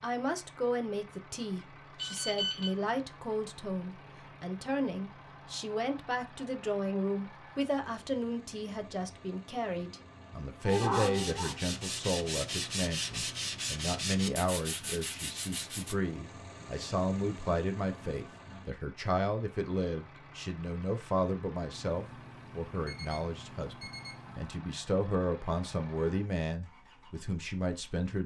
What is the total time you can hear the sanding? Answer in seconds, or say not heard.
5 s.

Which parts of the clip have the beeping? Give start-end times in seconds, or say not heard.
1.9-2.7, 21.7-24.5.